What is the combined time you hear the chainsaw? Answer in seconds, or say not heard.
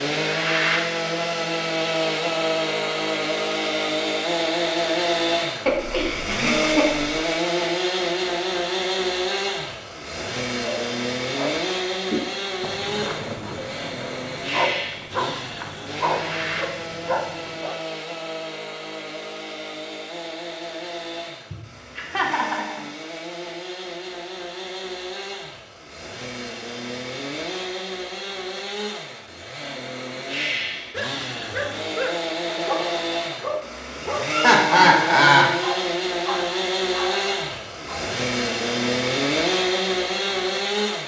41 s.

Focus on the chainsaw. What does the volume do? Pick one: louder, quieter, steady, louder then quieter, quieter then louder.
quieter then louder.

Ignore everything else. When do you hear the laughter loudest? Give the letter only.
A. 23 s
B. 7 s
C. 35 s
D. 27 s
C.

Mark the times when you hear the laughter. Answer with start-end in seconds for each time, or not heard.
5.7-7.1, 21.5-22.8, 34.3-35.5.